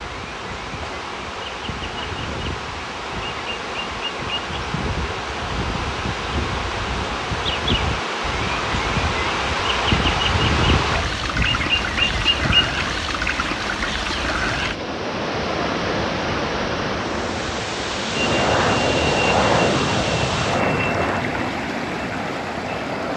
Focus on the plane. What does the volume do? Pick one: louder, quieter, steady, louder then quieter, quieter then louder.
quieter.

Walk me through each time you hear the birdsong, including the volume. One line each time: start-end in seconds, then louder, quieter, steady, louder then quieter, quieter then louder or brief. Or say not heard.
0.0-12.7 louder.